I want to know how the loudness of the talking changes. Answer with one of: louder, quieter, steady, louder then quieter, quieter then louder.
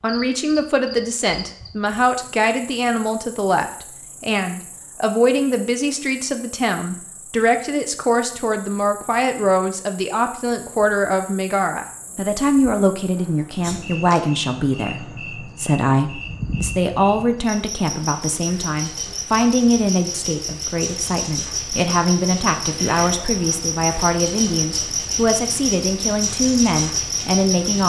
steady.